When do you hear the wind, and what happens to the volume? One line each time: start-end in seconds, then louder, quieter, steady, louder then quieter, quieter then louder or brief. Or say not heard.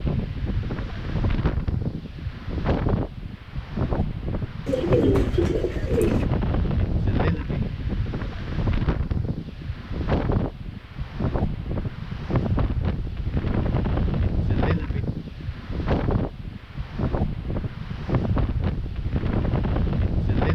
0.0-20.5 steady.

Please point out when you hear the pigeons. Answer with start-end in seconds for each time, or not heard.
4.7-6.2.